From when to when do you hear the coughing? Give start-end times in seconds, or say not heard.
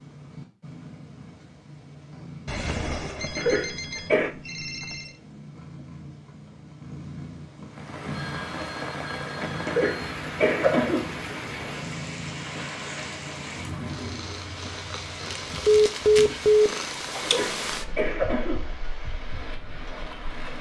3.4-4.3, 9.7-11.1, 17.2-18.7.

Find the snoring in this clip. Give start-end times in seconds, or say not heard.
not heard.